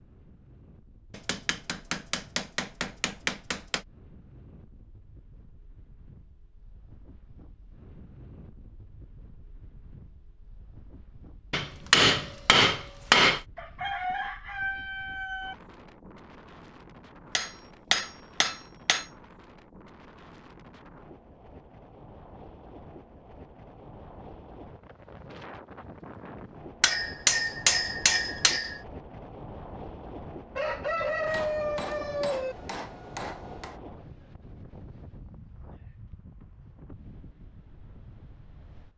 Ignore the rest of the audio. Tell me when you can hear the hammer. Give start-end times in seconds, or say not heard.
1.1-3.8, 11.5-13.4, 17.4-19.1, 26.8-28.8, 31.2-33.8.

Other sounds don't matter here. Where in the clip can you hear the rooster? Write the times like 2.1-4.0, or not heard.
13.6-15.6, 30.6-32.5.